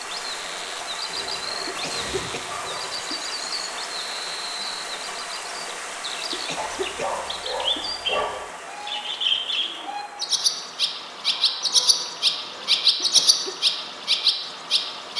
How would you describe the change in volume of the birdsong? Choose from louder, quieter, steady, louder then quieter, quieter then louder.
louder.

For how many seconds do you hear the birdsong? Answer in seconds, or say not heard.
15 s.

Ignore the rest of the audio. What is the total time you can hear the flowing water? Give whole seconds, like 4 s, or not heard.
15 s.